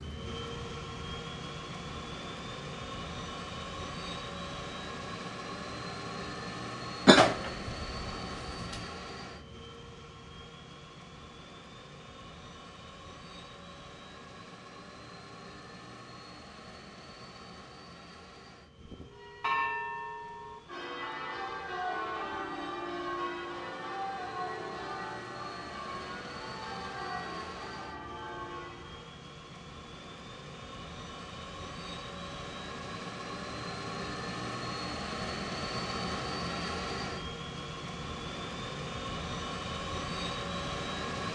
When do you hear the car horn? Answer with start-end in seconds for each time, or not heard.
not heard.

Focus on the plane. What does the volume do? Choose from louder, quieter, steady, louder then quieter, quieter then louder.
quieter then louder.